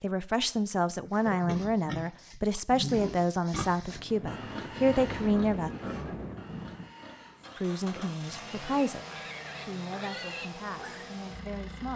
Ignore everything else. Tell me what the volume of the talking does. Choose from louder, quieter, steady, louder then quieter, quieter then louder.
quieter.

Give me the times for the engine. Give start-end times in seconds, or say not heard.
7.3-11.9.